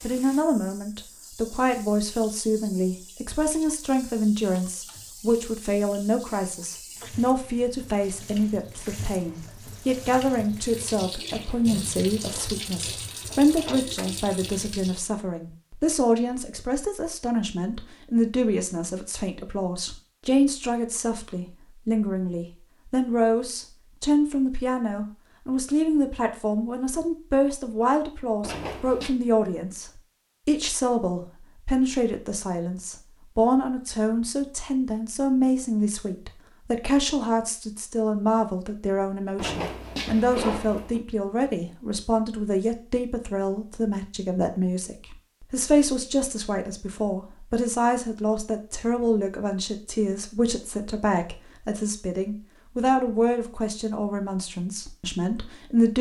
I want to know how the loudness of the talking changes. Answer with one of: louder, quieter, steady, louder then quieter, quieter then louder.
steady.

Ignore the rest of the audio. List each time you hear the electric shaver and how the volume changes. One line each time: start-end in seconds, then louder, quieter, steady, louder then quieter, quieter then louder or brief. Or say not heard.
not heard.